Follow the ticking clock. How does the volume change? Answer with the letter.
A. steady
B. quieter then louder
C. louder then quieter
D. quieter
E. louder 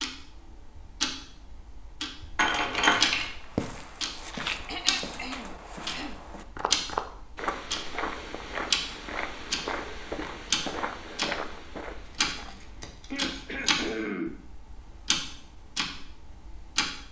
A.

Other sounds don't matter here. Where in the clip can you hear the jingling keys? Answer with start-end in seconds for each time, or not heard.
2.4-3.2, 12.1-13.8.